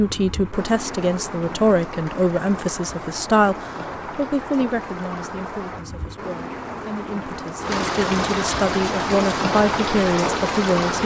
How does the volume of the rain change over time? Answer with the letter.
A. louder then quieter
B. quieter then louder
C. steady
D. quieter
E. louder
E.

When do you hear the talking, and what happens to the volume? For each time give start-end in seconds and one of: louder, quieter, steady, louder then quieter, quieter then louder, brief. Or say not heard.
0.0-11.0 quieter then louder.